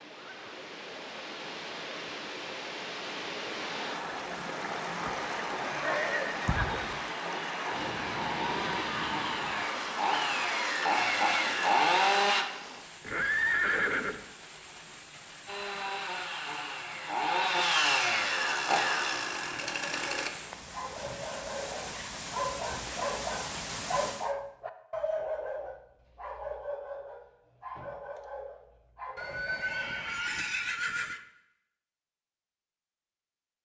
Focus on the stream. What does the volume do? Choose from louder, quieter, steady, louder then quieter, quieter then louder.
quieter then louder.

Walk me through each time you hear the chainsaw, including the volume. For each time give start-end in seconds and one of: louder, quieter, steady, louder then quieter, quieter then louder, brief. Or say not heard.
3.8-12.4 louder
15.4-20.3 louder then quieter.